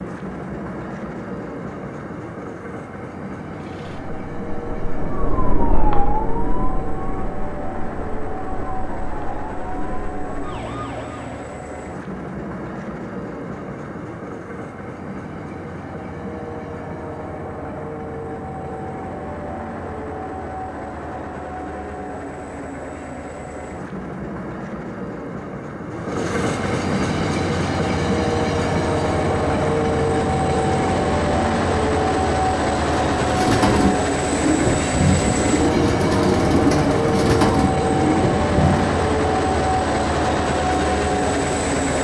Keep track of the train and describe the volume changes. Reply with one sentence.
The volume of the train goes up.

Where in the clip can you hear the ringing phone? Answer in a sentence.
You can't hear the ringing phone here.